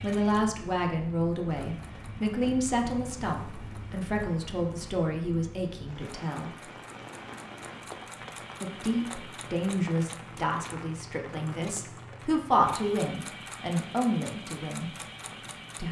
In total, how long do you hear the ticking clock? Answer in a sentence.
The ticking clock can't be heard in this clip.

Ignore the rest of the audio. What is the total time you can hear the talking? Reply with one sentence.
The talking can be heard for 13 seconds in total.